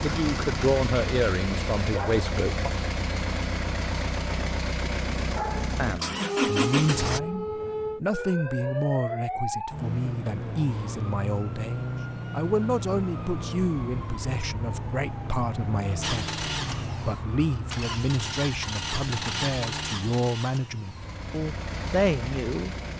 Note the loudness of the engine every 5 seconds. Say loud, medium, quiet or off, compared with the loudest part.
loud, loud, off, medium, medium.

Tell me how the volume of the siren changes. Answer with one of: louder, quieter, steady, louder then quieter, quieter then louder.
quieter.